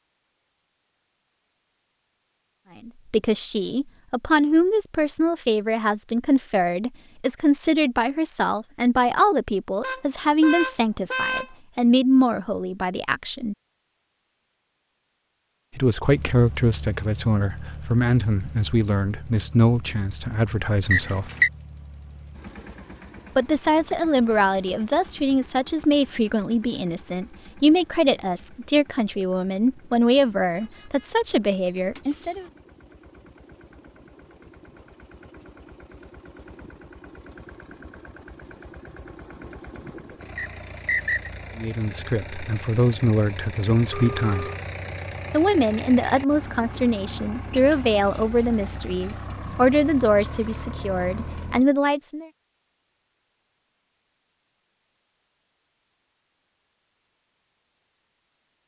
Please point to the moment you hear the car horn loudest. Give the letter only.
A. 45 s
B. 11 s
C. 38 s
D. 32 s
B.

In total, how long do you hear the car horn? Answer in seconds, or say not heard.
4 s.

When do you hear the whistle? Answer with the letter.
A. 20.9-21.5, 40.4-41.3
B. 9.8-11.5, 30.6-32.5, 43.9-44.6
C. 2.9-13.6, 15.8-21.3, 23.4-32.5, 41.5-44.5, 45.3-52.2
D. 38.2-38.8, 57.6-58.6
A.